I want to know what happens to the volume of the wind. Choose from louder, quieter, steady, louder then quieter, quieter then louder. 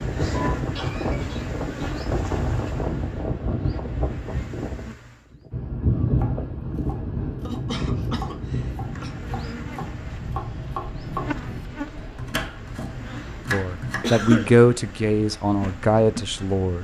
quieter.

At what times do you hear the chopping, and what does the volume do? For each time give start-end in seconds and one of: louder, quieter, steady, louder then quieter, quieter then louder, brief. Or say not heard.
6.2-14.1 louder.